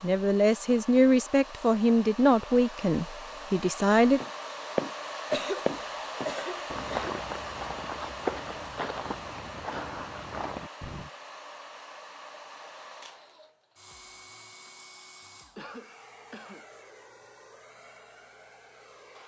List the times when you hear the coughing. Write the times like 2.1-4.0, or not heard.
5.3-7.2, 15.6-16.6.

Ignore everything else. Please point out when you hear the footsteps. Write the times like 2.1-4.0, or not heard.
4.2-11.1.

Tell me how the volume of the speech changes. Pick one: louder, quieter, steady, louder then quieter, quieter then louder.
quieter.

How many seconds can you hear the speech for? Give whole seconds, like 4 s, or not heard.
4 s.